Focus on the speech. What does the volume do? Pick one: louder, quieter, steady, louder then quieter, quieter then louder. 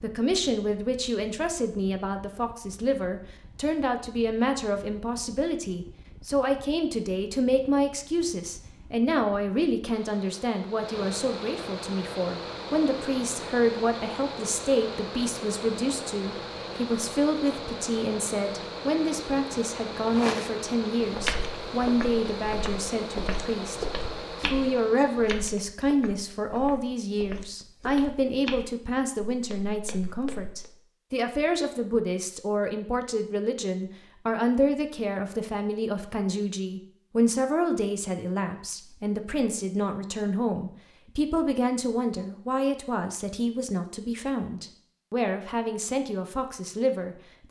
steady.